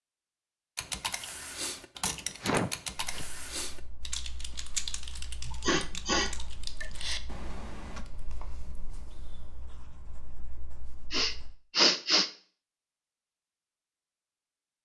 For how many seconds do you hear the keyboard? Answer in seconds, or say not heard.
7 s.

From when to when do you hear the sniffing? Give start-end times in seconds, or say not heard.
2.4-3.2, 5.5-6.9, 11.1-12.3.